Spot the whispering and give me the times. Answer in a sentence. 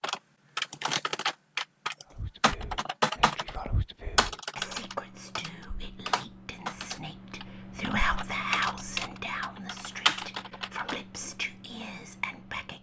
You can hear the whispering from 2.1 to 12.7 s.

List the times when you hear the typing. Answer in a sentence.
You can hear the typing from 0.0 to 11.7 s.